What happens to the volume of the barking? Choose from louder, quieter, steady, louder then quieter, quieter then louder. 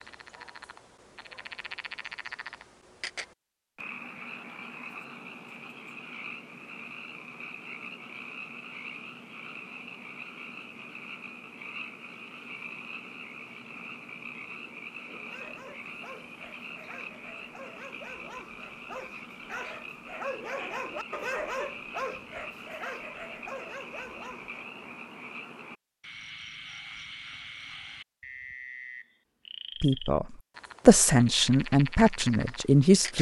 louder then quieter.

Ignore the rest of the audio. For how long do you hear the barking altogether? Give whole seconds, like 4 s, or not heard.
9 s.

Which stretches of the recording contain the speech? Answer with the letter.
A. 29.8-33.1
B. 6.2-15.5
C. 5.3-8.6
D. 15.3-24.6
A.